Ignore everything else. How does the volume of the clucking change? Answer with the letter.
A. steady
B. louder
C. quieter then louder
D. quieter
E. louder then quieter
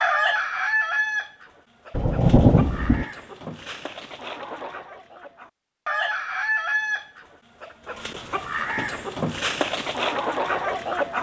C.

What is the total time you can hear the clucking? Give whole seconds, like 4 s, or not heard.
11 s.